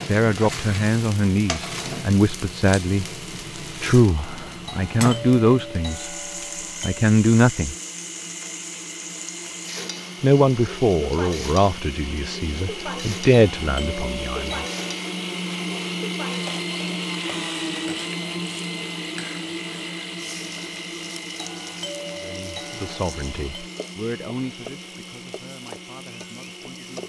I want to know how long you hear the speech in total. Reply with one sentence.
You can hear the speech for 16 seconds altogether.